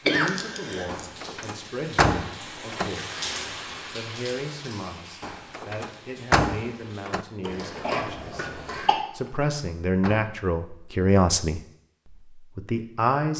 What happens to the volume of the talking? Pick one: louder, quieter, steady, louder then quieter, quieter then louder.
louder.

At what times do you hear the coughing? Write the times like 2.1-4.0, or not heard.
0.1-1.4, 7.4-9.0.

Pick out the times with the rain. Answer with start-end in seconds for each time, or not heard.
0.0-7.2.